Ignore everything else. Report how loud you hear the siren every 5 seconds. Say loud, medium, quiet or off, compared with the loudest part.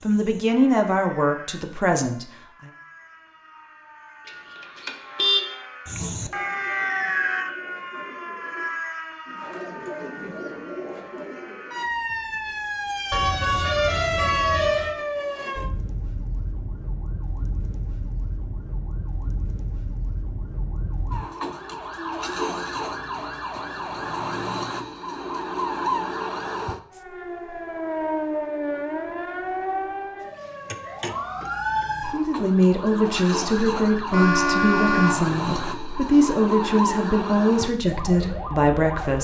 quiet, loud, loud, medium, loud, loud, loud, loud.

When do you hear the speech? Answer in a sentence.
You can hear the speech from 0.0 to 2.7 s and from 32.0 to 39.1 s.